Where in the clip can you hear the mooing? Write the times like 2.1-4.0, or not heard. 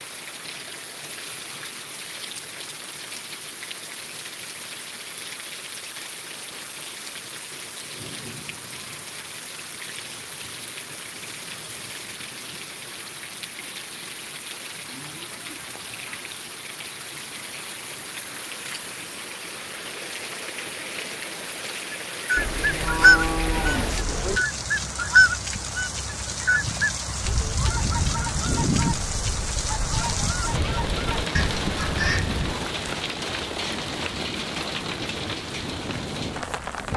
14.8-16.2, 22.4-24.4.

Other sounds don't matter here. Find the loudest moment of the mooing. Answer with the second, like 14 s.
23 s.